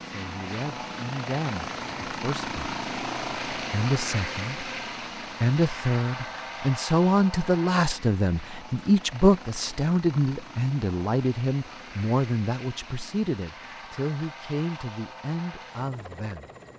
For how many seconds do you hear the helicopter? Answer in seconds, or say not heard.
17 s.